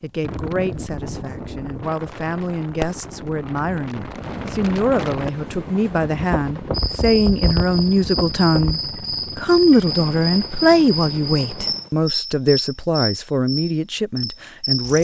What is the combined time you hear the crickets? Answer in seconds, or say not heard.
8 s.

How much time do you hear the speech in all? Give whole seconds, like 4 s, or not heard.
15 s.